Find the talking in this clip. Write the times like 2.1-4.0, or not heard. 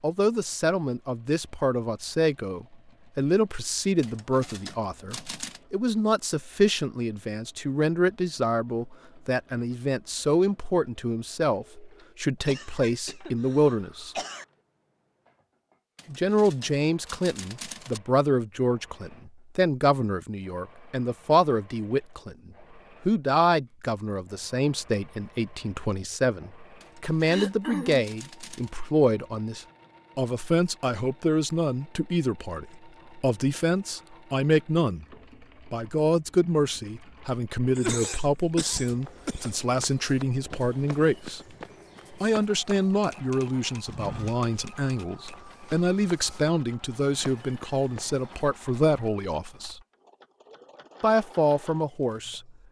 0.0-14.2, 16.1-35.0, 35.6-41.4, 42.2-49.8, 51.0-52.5.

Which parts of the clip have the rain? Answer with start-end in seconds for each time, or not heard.
not heard.